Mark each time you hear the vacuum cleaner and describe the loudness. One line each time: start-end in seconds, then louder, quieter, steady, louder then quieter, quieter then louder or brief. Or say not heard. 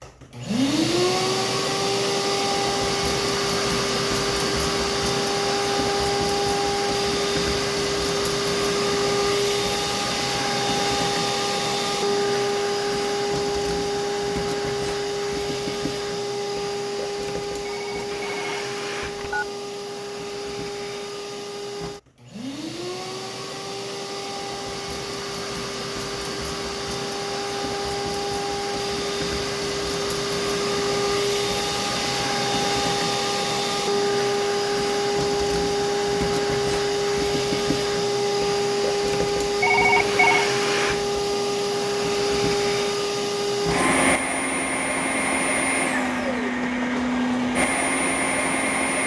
0.0-49.0 quieter then louder.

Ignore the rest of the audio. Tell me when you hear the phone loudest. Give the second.
40 s.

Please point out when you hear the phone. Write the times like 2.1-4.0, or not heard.
17.6-19.5, 39.6-40.5.